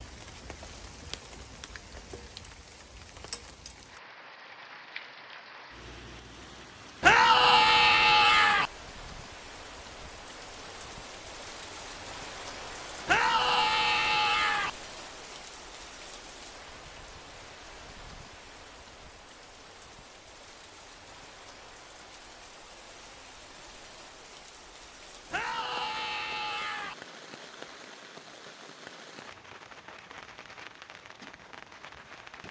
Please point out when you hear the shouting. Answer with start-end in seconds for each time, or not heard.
7.0-8.7, 13.1-14.7, 25.3-26.9.